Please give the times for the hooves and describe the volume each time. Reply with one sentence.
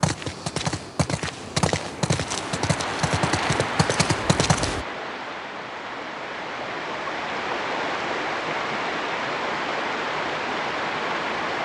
You can hear the hooves from 0.0 to 4.8 s, at a steady volume.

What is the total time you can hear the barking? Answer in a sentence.
You can't hear the barking here.